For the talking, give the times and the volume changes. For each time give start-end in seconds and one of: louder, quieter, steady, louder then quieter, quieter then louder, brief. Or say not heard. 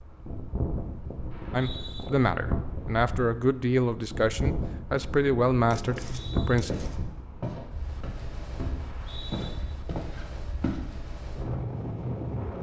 1.5-6.7 steady.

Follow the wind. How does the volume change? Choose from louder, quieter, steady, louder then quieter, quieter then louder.
quieter then louder.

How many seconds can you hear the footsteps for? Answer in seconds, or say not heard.
5 s.